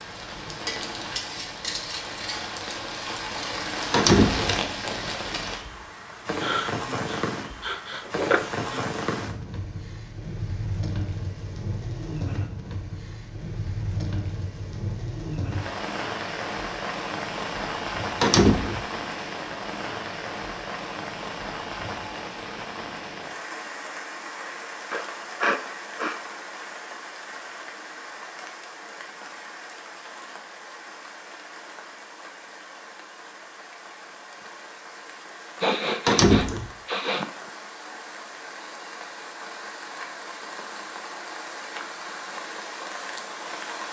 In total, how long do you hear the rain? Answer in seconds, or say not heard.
44 s.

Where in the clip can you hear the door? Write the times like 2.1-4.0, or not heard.
3.9-4.5, 18.2-18.9, 36.0-36.7.